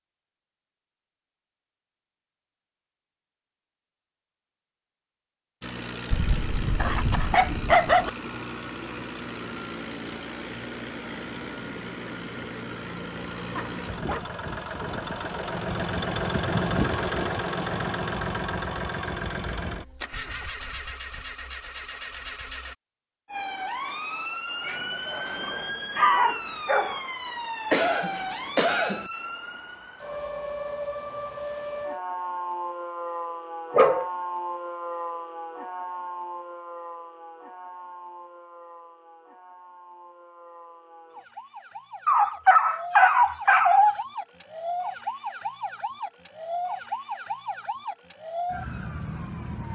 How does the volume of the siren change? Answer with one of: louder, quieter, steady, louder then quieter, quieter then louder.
quieter then louder.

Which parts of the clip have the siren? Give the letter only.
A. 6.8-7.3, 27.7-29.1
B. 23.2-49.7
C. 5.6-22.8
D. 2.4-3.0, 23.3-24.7
B.